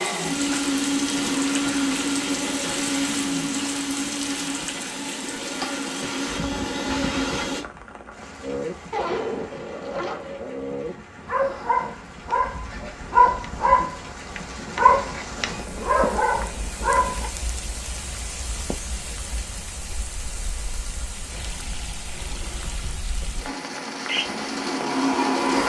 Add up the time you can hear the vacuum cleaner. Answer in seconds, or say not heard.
10 s.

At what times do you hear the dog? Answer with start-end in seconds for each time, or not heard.
8.4-17.3.